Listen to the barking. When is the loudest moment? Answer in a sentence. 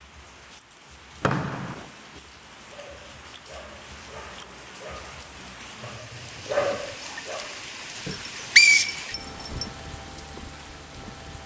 The volume of the barking peaks at 7 seconds.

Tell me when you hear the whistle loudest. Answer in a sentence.
The volume of the whistle peaks at 9 seconds.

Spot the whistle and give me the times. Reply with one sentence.
You can hear the whistle from 1.2 to 1.9 s and from 8.0 to 9.7 s.